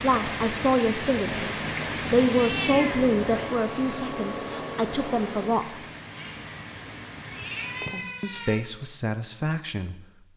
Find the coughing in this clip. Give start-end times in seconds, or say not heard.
not heard.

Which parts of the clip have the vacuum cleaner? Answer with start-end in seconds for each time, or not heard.
3.0-5.5.